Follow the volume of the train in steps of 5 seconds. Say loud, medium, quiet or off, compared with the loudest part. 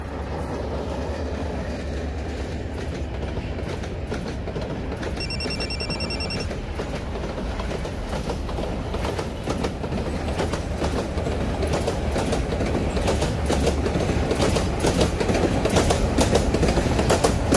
medium, medium, loud, loud.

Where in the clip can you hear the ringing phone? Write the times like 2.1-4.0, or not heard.
5.2-6.5.